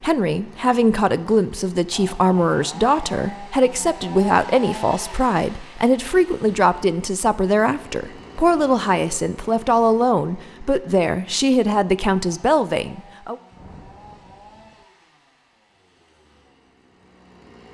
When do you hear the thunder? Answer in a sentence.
The thunder can be heard from 13.5 to 14.8 s.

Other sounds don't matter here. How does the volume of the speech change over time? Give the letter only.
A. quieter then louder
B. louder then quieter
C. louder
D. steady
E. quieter
D.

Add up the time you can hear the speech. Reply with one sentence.
You can hear the speech for 13 seconds altogether.